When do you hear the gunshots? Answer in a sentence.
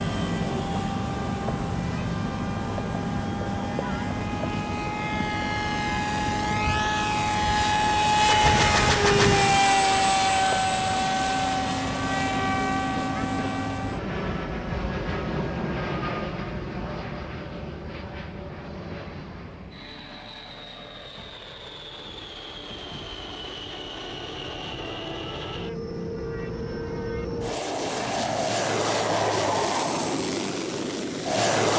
You can hear the gunshots from 8.2 to 9.6 s.